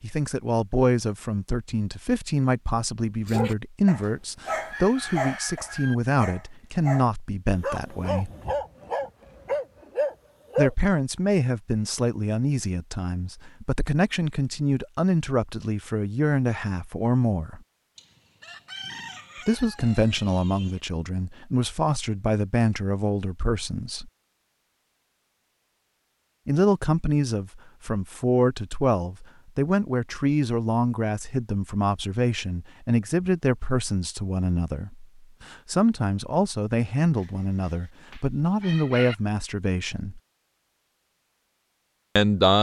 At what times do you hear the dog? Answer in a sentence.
The dog can be heard from 3.2 to 10.7 s.